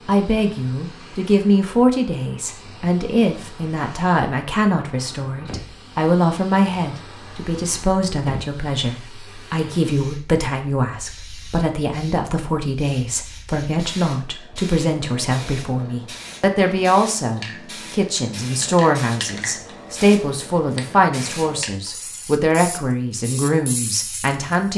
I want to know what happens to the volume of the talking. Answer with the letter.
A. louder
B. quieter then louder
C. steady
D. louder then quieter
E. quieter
C.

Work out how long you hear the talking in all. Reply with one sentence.
The talking can be heard for 25 seconds in total.